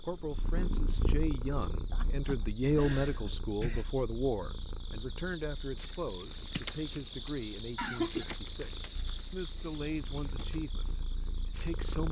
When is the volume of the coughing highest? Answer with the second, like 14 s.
8 s.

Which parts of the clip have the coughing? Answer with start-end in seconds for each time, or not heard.
1.9-3.9, 7.8-8.3.